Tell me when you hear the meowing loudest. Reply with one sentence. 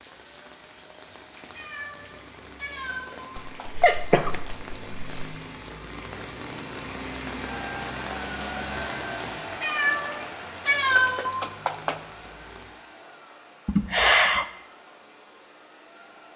The volume of the meowing peaks at 11 seconds.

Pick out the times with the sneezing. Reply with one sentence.
You can hear the sneezing from 3.4 to 5.3 s and from 13.7 to 14.4 s.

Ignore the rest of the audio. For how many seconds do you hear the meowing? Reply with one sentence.
The meowing can be heard for 5 seconds in total.